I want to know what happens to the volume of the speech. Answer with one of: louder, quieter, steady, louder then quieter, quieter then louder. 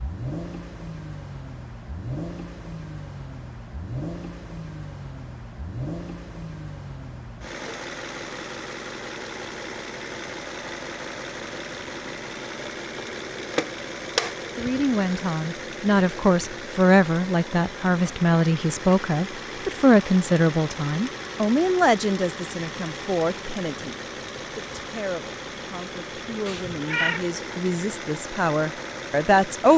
quieter then louder.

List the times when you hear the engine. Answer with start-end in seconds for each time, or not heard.
0.0-29.7.